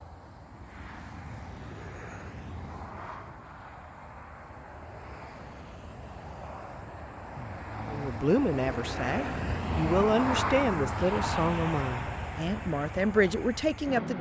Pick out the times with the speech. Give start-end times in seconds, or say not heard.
7.8-14.1.